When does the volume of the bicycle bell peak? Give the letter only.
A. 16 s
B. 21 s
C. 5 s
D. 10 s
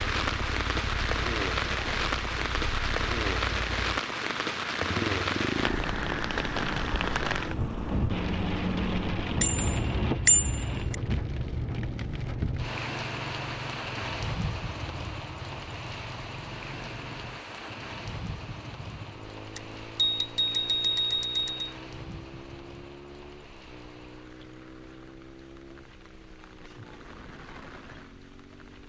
D.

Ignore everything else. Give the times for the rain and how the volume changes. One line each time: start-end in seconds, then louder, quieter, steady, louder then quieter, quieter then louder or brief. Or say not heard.
0.0-28.8 quieter.